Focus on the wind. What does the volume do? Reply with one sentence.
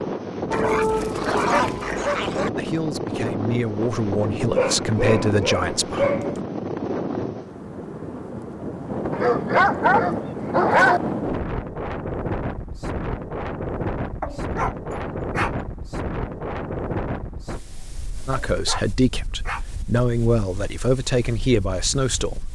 The volume of the wind goes down.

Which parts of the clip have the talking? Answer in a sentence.
The talking can be heard from 2.5 to 6.1 s and from 18.2 to 22.4 s.